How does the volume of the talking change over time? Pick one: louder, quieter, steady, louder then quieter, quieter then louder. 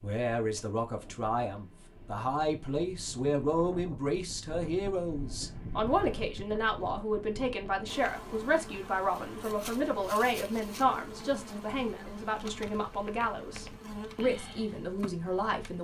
steady.